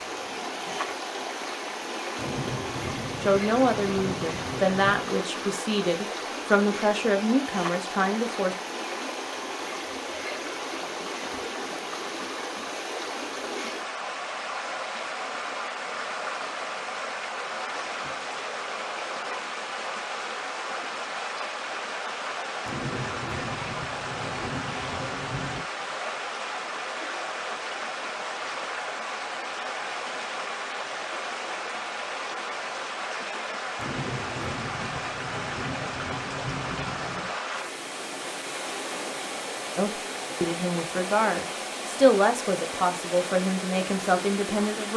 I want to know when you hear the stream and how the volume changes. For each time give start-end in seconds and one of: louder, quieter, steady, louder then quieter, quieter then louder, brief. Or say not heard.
0.0-44.9 steady.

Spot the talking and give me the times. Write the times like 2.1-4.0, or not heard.
3.2-8.6, 39.8-44.9.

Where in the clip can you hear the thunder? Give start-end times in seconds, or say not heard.
2.1-5.0, 22.6-25.6, 33.8-37.3.